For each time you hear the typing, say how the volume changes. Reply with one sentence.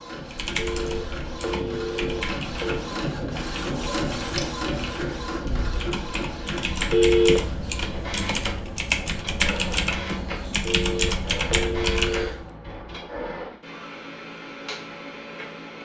The typing can be heard from 0.3 to 12.4 s, getting louder.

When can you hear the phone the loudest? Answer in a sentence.
The volume of the phone peaks at 7 seconds.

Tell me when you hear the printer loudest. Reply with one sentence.
The volume of the printer peaks at 4 seconds.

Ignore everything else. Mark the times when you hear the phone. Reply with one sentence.
The phone can be heard from 0.6 to 2.8 s, from 6.9 to 7.4 s and from 10.7 to 12.3 s.